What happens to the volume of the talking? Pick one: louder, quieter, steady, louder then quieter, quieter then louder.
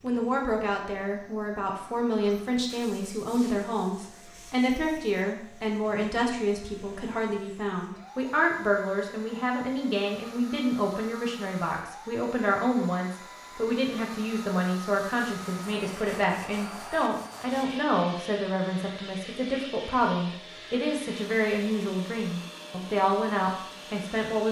steady.